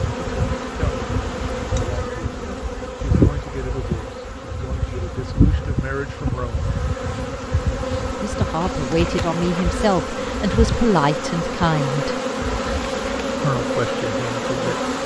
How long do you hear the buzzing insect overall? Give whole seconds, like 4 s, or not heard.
15 s.